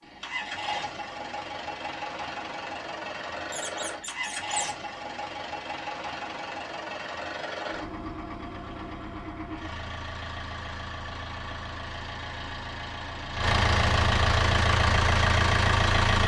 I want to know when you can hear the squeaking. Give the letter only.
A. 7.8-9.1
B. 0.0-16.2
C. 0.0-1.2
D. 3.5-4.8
D.